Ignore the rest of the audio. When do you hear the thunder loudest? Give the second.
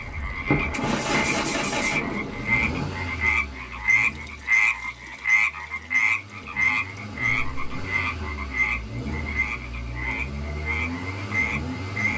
1 s.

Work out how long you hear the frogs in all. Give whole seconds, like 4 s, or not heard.
12 s.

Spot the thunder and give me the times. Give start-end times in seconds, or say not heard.
0.5-3.0.